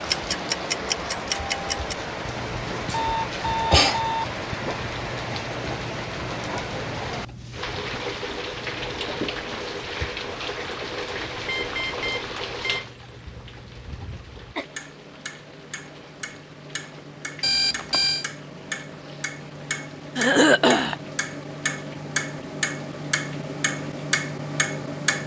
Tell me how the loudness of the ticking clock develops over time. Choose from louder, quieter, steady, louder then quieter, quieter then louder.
quieter then louder.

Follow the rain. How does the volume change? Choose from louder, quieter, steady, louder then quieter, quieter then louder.
quieter.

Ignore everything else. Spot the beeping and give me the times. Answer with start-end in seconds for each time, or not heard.
2.9-4.2, 11.4-12.8, 17.4-18.2.